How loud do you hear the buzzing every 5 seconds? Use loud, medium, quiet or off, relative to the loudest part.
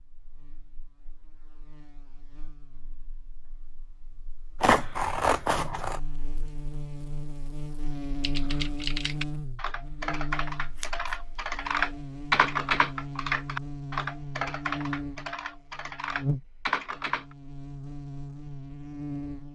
quiet, loud, loud, loud.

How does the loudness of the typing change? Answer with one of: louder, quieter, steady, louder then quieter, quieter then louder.
louder then quieter.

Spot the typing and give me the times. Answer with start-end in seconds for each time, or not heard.
8.2-17.4.